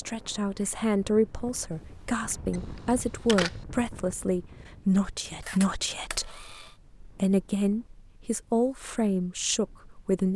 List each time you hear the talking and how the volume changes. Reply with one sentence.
You can hear the talking from 0.0 to 10.3 s, at a steady volume.